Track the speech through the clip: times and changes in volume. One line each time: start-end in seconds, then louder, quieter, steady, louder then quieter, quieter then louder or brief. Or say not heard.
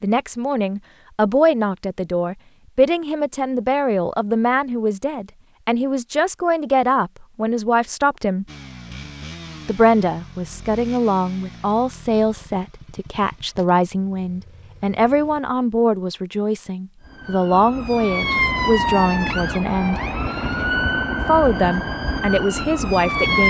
0.0-8.4 steady
9.7-20.0 steady
21.2-23.4 brief.